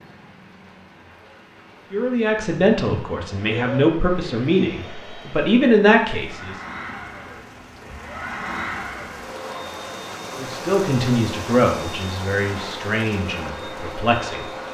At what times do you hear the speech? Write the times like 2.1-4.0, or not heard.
1.9-6.6, 10.3-14.5.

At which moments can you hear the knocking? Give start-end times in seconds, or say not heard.
not heard.